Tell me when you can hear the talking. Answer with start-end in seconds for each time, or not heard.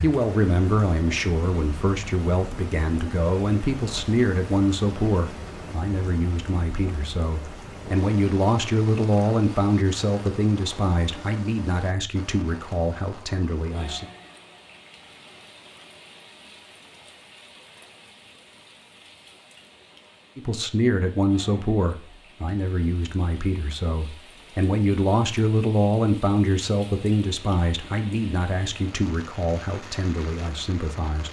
0.0-14.1, 20.4-31.2.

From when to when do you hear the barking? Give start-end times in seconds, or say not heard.
not heard.